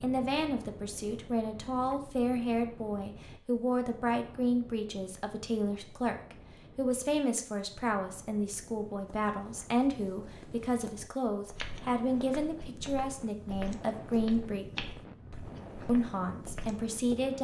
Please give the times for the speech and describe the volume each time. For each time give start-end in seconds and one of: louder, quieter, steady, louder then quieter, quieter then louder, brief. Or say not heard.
0.0-14.7 steady
15.8-17.4 brief.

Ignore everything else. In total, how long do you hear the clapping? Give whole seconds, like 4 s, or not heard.
not heard.